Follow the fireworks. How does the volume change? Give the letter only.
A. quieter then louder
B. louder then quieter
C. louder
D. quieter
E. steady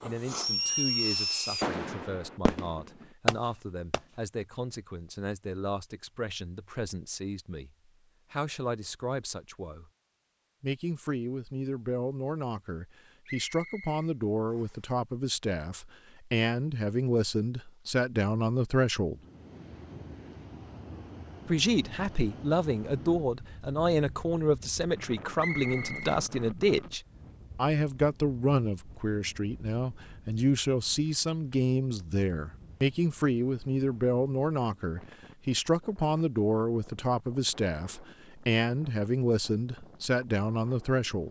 A.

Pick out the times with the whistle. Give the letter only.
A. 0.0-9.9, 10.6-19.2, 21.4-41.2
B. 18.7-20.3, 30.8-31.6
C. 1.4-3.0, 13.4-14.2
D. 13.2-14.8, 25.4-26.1
D.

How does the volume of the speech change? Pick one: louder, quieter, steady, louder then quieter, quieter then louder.
louder.